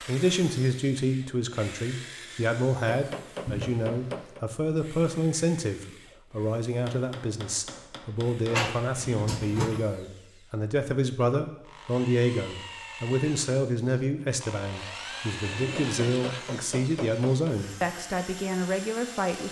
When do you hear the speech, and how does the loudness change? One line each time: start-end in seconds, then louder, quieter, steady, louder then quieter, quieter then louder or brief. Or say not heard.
0.1-19.4 steady.